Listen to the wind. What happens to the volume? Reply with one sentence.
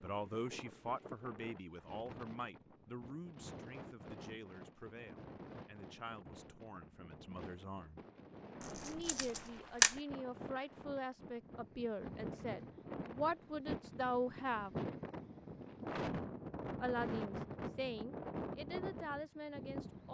The volume of the wind goes up.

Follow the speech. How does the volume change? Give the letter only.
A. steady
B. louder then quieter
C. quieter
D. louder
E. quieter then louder
E.